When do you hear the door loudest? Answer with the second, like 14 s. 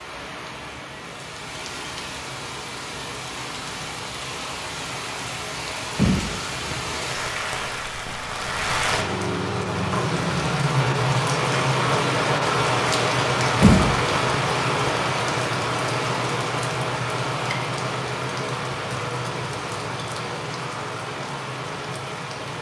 14 s.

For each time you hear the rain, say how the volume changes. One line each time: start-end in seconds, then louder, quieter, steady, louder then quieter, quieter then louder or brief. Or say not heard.
0.0-22.5 louder then quieter.